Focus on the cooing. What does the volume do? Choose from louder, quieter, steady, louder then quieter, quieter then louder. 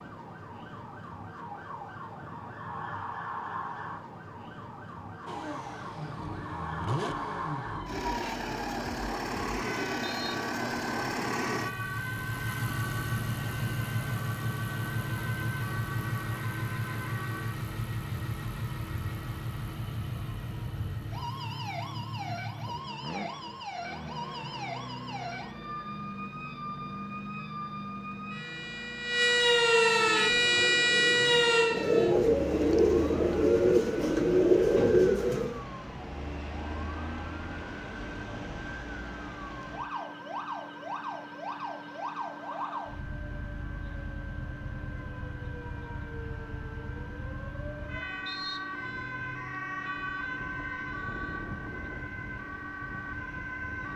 louder.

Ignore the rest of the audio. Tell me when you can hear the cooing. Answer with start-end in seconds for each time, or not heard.
29.9-35.6.